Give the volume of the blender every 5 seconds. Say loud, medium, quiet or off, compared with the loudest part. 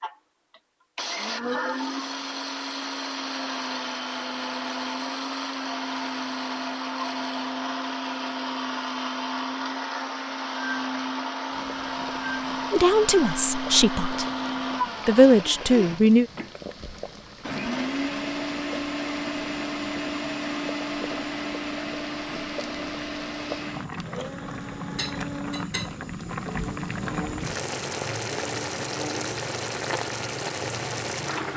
loud, loud, loud, loud, loud, medium, off.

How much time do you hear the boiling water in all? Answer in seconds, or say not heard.
20 s.